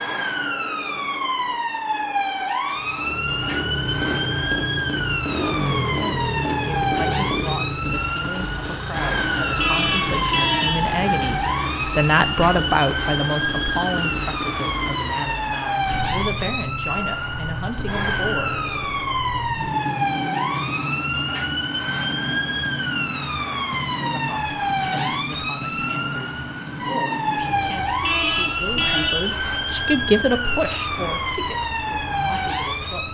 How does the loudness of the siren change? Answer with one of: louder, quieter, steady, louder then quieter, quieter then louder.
steady.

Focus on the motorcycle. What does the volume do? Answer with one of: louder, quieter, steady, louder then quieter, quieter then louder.
quieter.